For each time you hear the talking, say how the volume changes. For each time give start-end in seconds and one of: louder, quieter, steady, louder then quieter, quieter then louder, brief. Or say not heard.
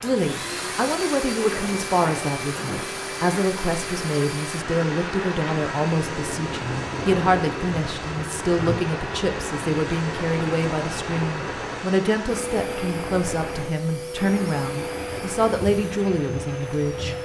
0.0-17.1 steady.